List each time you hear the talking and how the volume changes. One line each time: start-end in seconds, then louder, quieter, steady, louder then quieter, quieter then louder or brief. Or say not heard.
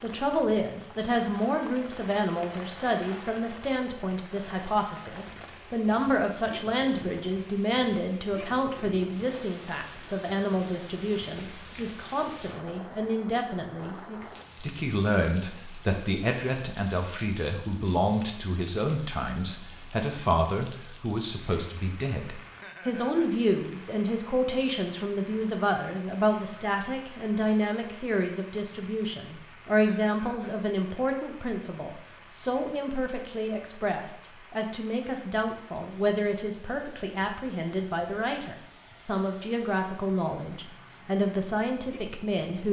0.0-42.6 steady.